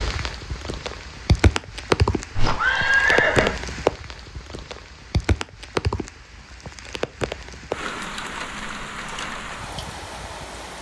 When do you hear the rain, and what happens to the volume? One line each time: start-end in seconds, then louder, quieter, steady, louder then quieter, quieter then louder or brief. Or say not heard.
0.0-10.7 quieter.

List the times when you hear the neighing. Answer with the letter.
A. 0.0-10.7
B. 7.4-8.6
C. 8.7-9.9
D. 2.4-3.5
D.